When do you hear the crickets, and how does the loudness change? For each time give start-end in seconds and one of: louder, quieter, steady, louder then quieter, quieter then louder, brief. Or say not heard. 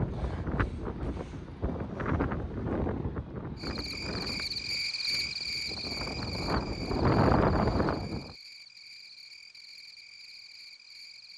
3.5-11.3 quieter.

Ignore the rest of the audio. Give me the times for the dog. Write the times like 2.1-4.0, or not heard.
not heard.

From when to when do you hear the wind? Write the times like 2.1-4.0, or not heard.
0.0-8.3.